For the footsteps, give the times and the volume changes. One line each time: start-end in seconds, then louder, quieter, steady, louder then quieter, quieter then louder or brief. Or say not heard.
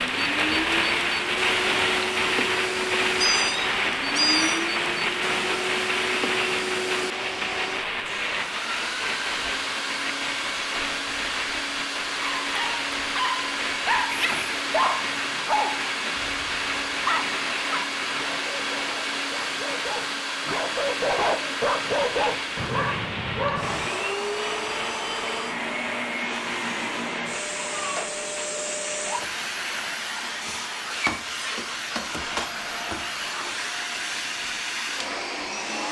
not heard.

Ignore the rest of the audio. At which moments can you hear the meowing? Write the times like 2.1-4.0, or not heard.
3.1-4.7.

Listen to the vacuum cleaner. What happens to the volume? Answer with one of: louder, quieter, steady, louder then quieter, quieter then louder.
steady.